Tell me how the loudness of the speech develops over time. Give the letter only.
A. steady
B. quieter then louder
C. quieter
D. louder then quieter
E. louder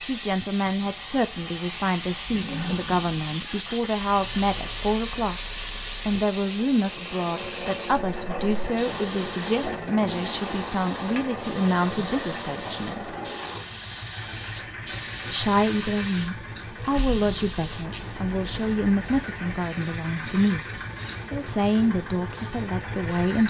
A.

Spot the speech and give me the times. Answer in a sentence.
You can hear the speech from 0.0 to 5.4 s, from 6.0 to 13.2 s and from 15.3 to 23.4 s.